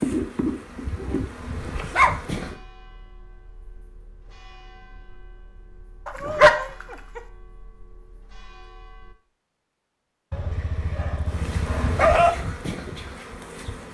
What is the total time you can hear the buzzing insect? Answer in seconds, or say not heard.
5 s.